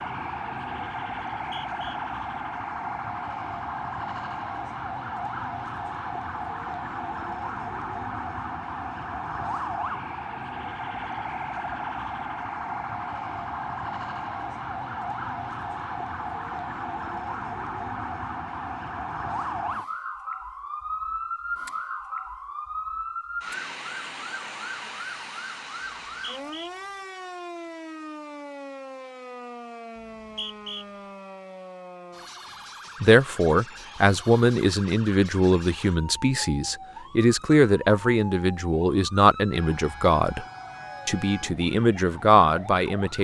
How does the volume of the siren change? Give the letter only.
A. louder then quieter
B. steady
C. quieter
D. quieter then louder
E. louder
C.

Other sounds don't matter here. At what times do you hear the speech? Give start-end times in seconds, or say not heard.
33.0-40.5, 41.0-43.1.